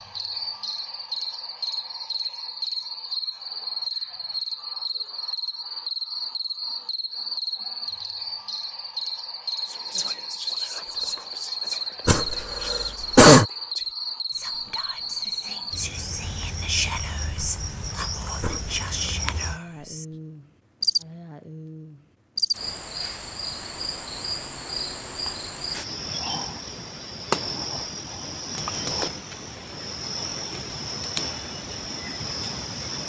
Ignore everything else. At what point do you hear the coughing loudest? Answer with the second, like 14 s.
13 s.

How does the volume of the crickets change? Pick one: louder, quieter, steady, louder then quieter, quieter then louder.
steady.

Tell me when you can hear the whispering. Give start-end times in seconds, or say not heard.
9.6-20.1.